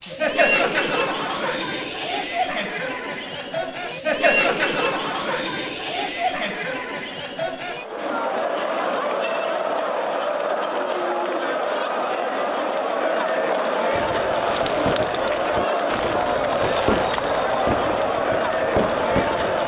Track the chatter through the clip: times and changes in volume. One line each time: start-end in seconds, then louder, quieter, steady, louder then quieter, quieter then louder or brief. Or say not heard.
0.0-19.6 steady.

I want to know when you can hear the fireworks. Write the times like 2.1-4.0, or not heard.
13.9-19.6.